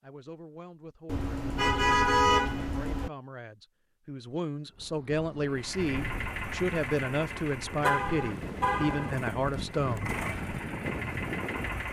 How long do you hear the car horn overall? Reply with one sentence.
The car horn can be heard for 3 seconds in total.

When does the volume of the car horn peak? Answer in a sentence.
The volume of the car horn peaks at 2 seconds.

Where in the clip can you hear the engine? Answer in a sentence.
You can hear the engine from 5.5 to 11.8 s.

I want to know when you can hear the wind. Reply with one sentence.
You can hear the wind from 4.8 to 11.8 s.